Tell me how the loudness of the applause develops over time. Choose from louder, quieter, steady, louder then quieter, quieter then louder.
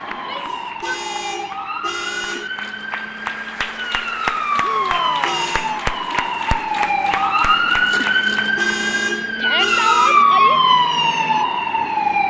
louder.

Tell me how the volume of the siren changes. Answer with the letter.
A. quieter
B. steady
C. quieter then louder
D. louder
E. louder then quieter
D.